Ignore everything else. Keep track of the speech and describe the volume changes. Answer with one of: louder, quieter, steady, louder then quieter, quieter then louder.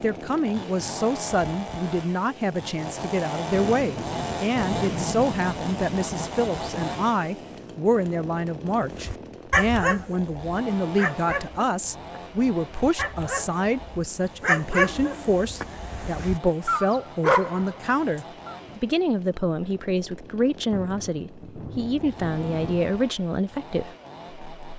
steady.